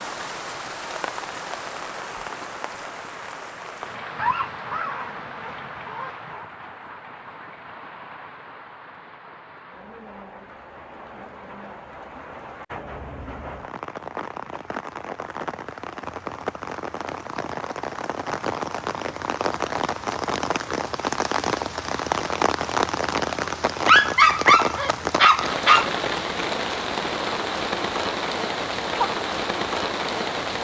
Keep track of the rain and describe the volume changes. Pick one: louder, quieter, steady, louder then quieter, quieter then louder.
quieter then louder.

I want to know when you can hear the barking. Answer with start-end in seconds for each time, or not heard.
4.2-6.5, 23.9-25.9.